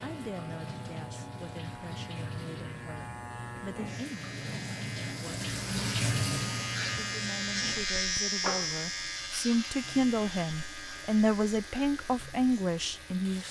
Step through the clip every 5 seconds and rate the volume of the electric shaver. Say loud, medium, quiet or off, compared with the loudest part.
medium, loud, medium.